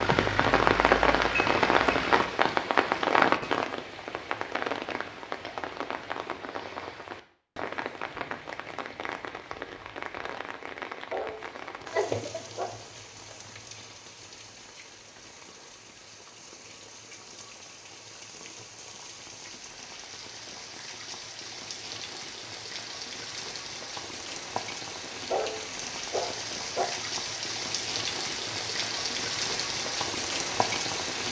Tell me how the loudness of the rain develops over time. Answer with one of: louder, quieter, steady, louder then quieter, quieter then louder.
quieter then louder.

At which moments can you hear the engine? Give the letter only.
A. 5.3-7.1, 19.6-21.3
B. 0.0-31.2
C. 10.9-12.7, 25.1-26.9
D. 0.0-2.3
D.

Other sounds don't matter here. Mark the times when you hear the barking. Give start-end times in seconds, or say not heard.
10.9-12.7, 25.1-26.9.